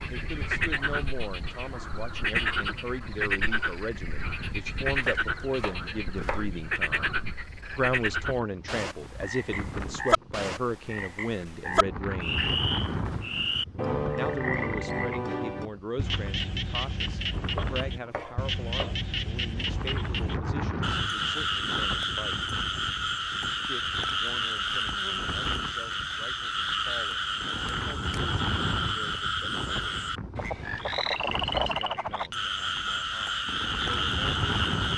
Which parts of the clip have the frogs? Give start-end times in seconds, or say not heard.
0.0-34.9.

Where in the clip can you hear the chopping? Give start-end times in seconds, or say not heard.
4.9-6.5, 17.6-19.0.